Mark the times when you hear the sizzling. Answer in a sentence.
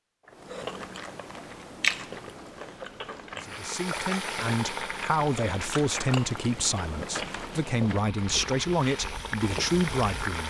You can hear the sizzling from 3.4 to 10.4 s.